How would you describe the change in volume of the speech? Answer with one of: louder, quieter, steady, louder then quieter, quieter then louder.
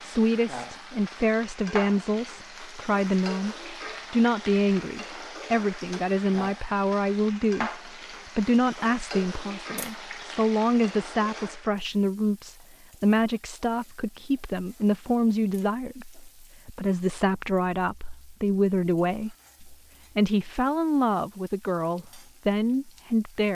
steady.